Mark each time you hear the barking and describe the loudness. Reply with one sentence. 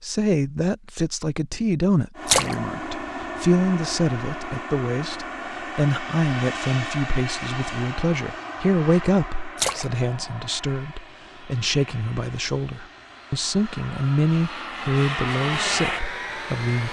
The barking can't be heard in this clip.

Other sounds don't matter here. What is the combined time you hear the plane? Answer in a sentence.
The plane can be heard for 15 seconds in total.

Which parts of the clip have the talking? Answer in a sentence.
The talking can be heard from 0.0 to 16.8 s.